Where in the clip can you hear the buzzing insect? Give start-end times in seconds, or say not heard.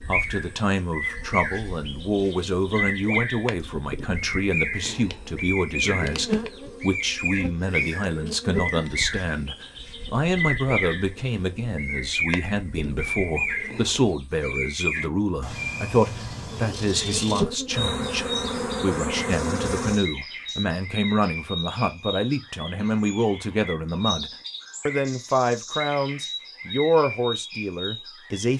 0.0-14.2, 16.4-20.0.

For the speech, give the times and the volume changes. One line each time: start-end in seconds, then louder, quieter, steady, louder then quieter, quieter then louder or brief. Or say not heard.
0.0-28.5 steady.